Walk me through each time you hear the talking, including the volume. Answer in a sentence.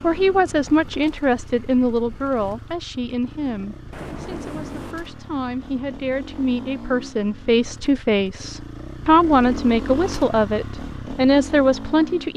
You can hear the talking from 0.0 to 12.3 s, getting quieter then louder.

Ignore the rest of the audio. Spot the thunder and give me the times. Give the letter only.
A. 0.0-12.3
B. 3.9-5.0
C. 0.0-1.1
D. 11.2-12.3
B.